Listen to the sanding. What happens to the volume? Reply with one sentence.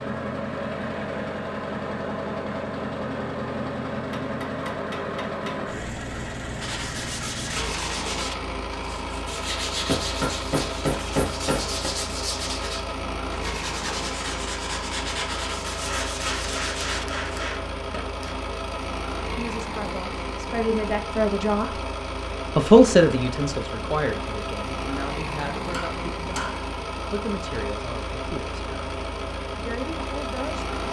The volume of the sanding stays about the same.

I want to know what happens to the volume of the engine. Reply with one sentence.
The loudness of the engine stays about the same.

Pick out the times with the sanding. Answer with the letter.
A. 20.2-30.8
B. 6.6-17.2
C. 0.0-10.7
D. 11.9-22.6
B.